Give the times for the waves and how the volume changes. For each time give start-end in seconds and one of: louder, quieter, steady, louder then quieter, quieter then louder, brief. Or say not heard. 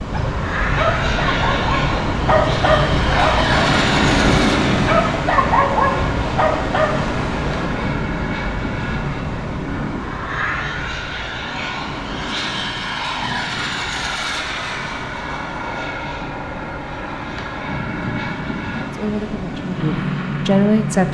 0.0-21.1 quieter.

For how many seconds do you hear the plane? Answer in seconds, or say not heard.
21 s.